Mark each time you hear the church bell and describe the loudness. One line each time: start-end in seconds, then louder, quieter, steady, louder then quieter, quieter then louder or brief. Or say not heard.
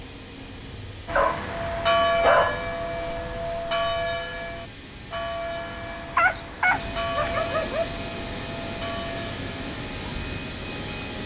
1.1-10.4 quieter.